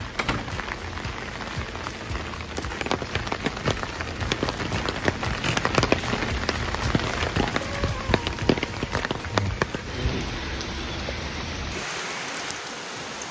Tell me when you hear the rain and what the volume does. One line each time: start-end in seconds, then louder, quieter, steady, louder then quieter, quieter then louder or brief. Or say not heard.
0.0-13.2 louder then quieter.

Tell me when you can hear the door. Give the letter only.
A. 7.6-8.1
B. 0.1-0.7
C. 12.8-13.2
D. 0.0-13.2
B.